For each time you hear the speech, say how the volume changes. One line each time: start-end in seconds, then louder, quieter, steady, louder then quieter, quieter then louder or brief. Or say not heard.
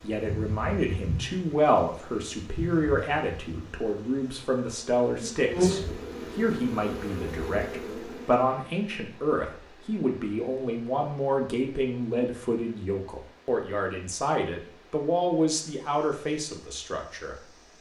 0.0-17.4 steady.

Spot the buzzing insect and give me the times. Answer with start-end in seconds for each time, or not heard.
0.0-8.3.